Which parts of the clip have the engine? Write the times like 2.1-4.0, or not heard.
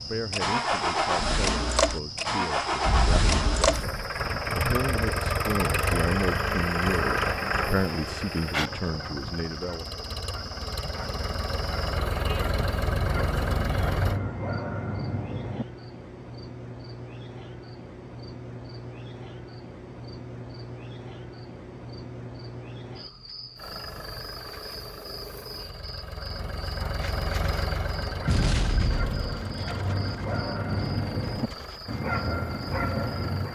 0.0-14.2, 23.6-33.5.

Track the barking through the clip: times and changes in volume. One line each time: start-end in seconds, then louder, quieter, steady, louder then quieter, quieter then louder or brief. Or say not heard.
8.6-15.7 louder
26.1-33.5 louder.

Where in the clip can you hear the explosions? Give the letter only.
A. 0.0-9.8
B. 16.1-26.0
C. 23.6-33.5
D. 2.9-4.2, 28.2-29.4
D.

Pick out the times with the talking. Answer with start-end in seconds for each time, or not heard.
0.0-9.8.